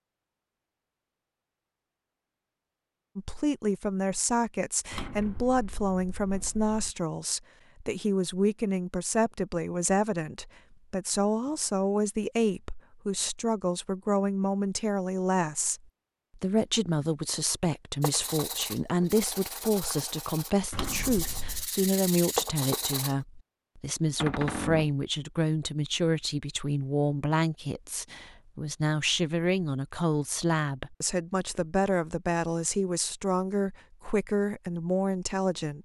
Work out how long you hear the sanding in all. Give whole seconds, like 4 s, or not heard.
5 s.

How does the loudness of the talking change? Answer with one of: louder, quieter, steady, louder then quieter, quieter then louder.
steady.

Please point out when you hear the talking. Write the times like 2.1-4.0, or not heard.
3.1-35.7.